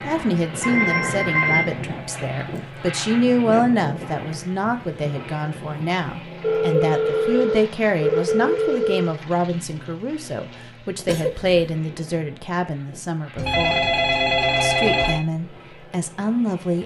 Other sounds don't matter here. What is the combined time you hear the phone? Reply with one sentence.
You can hear the phone for 6 seconds altogether.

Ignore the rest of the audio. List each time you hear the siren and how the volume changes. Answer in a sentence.
The siren can't be heard in this clip.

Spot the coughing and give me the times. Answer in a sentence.
You can hear the coughing from 11.1 to 11.8 s.